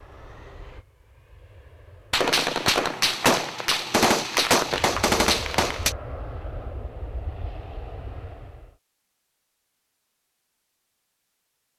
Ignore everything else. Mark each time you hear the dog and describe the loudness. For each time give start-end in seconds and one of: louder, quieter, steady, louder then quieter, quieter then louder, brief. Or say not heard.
not heard.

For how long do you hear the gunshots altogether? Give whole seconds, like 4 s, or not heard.
4 s.